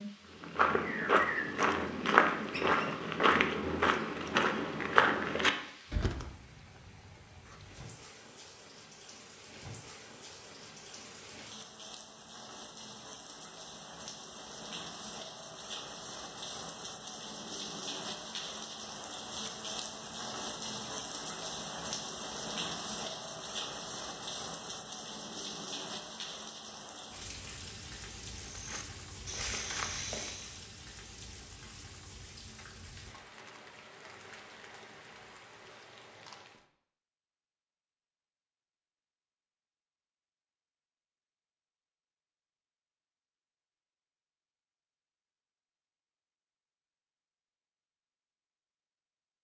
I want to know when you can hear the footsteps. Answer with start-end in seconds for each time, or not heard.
0.4-6.3, 28.4-30.6.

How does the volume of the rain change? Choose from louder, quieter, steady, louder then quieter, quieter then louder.
louder then quieter.